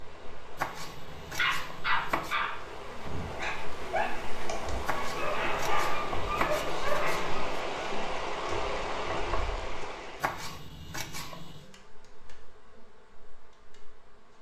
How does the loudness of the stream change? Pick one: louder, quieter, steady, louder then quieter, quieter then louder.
louder.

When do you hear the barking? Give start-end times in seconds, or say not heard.
1.4-7.4.